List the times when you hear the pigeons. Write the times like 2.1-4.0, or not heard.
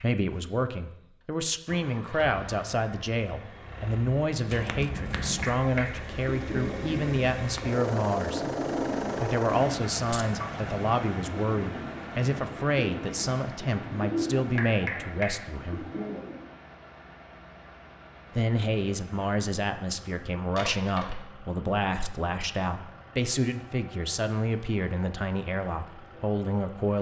5.1-16.5.